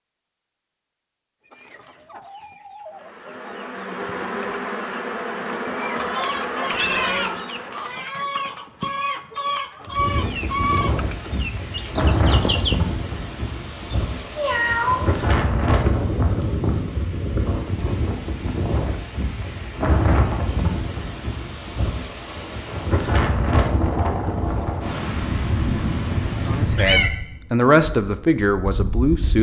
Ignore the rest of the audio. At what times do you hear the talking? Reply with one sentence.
The talking can be heard from 26.4 to 29.3 s.